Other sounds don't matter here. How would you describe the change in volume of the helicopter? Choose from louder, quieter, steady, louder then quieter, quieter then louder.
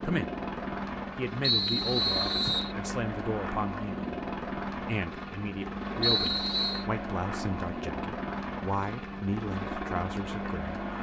steady.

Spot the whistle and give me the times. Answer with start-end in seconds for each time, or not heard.
1.4-2.8, 6.0-6.8.